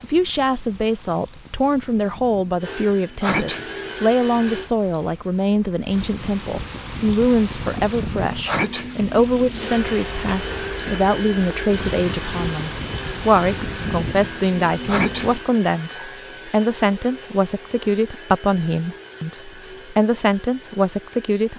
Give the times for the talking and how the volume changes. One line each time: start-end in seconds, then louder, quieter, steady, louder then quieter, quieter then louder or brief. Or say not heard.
0.0-21.5 steady.